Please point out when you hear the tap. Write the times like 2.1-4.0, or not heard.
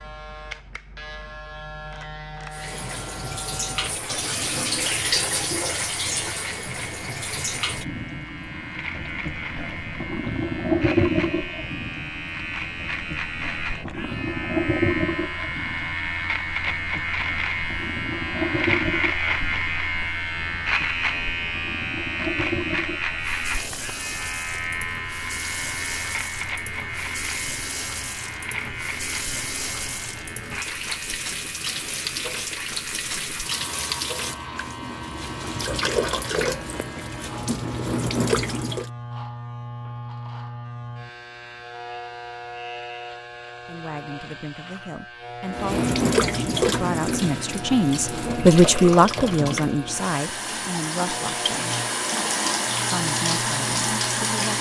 2.5-38.9, 45.5-54.5.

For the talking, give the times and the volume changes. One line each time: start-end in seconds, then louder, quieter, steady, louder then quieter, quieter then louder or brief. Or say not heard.
43.6-51.8 louder then quieter
52.9-54.5 brief.